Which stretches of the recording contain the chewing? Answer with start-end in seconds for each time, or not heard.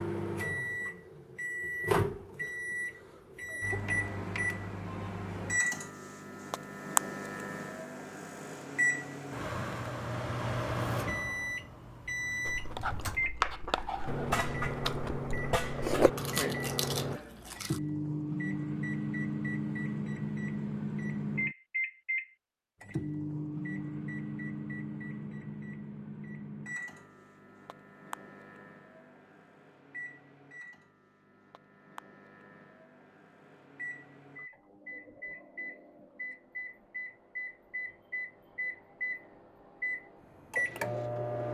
12.4-17.8.